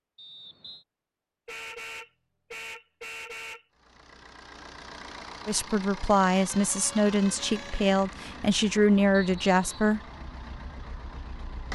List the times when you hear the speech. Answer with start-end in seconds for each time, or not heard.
5.5-10.0.